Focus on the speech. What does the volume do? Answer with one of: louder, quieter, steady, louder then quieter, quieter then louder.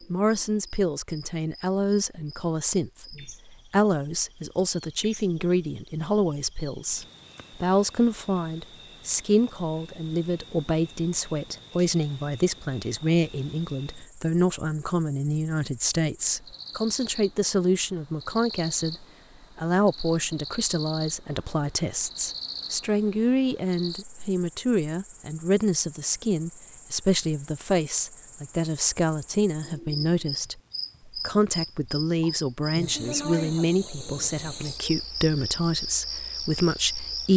steady.